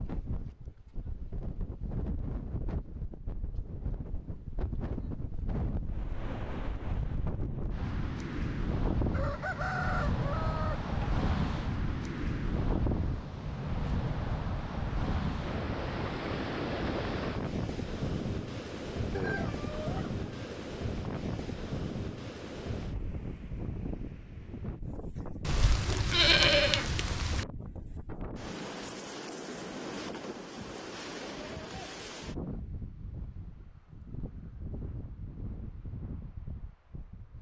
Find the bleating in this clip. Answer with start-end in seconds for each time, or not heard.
25.4-27.4.